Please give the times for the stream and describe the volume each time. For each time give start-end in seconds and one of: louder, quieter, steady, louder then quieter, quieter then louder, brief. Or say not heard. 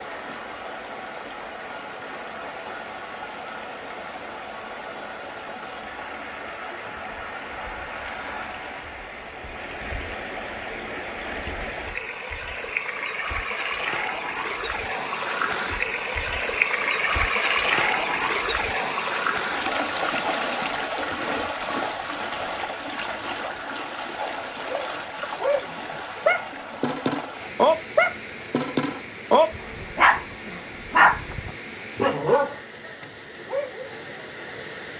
0.0-34.9 louder then quieter.